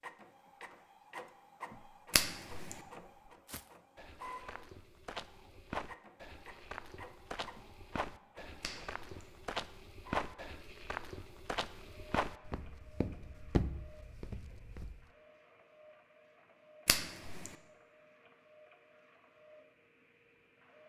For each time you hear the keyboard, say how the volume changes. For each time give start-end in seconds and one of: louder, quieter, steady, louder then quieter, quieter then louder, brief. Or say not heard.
not heard.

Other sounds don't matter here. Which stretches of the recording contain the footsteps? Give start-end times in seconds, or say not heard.
3.2-15.1.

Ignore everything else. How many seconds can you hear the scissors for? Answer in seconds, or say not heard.
2 s.